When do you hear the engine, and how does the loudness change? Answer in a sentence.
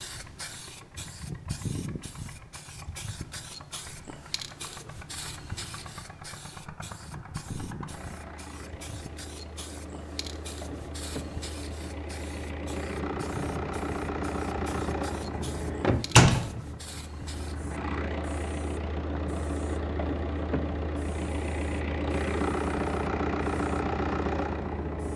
You can hear the engine from 0.0 to 25.1 s, getting louder.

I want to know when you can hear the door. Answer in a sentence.
You can hear the door from 15.3 to 16.5 s.